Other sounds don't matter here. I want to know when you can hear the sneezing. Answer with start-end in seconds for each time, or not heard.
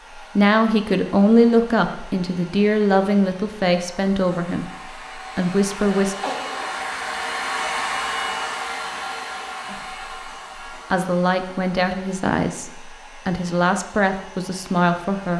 6.2-7.0.